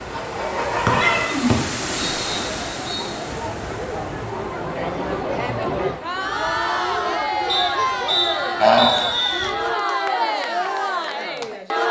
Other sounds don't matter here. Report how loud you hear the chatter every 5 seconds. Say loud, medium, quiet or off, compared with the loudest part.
medium, loud, loud.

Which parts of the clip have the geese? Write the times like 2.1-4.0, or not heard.
0.1-1.6, 8.6-9.1.